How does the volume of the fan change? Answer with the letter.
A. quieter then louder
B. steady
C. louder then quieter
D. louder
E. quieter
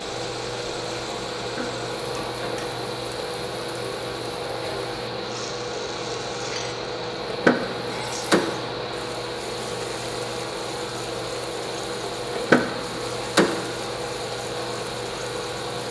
B.